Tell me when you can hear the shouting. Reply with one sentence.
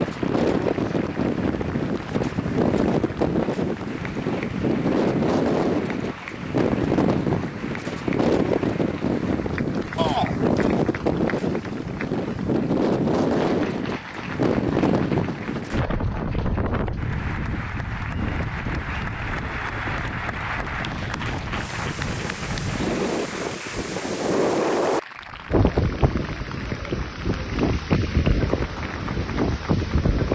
You can hear the shouting from 9.9 to 10.3 s.